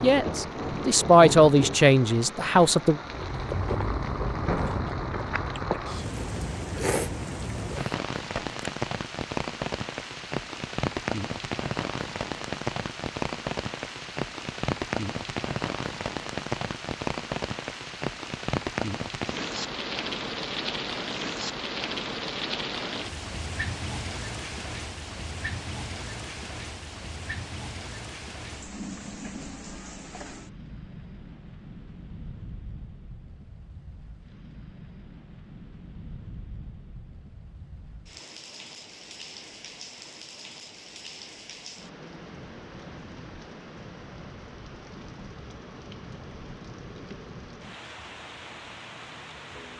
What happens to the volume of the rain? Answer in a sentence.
The volume of the rain goes down.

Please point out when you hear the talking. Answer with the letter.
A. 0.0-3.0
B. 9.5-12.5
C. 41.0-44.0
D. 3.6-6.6
A.